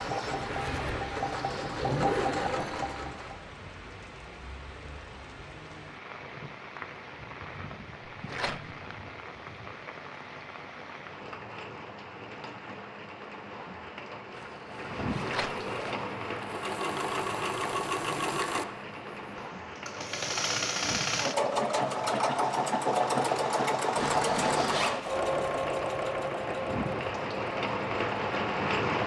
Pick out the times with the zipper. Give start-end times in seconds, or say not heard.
0.5-2.8, 14.3-16.1, 23.9-25.0.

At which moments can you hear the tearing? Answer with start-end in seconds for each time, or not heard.
8.2-8.7, 15.2-15.7.